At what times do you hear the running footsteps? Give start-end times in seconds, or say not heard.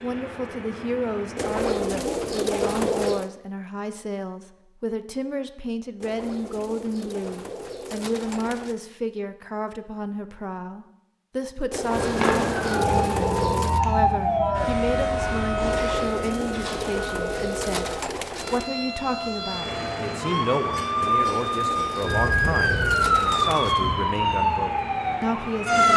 not heard.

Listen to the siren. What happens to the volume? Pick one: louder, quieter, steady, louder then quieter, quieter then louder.
quieter then louder.